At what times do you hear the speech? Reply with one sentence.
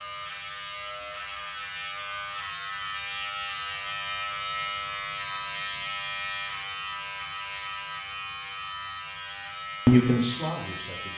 You can hear the speech from 9.8 to 11.1 s.